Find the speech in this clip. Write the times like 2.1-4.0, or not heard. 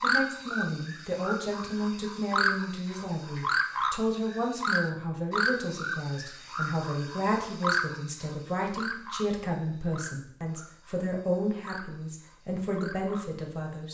0.0-13.8.